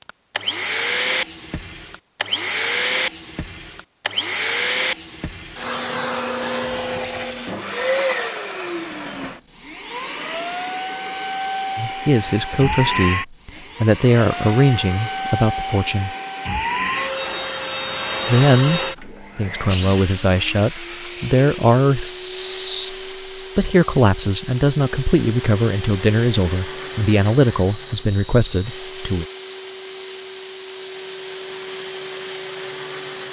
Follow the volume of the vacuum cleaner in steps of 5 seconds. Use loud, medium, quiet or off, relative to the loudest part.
loud, loud, loud, loud, medium, medium, medium.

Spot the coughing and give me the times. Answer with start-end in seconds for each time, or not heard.
not heard.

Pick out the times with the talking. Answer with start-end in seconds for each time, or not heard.
11.8-16.1, 18.2-22.9, 23.6-29.2.